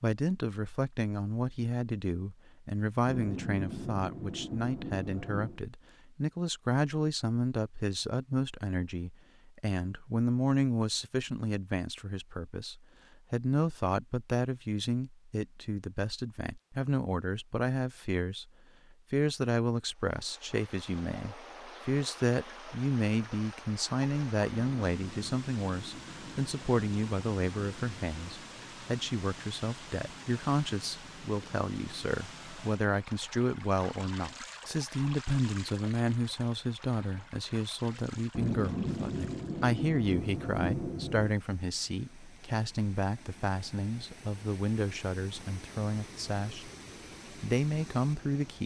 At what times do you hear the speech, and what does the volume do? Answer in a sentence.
The speech can be heard from 0.0 to 46.7 s, at a steady volume; and briefly from 47.3 to 48.6 s.